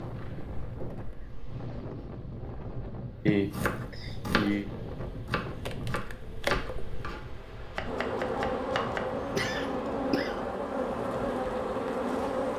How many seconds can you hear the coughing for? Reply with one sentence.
You can hear the coughing for 3 seconds altogether.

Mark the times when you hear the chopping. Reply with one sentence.
You can hear the chopping from 3.4 to 10.0 s.